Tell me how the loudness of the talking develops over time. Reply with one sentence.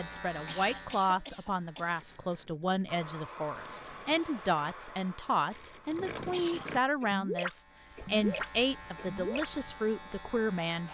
The volume of the talking stays about the same.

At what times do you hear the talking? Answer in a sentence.
You can hear the talking from 0.0 to 10.8 s.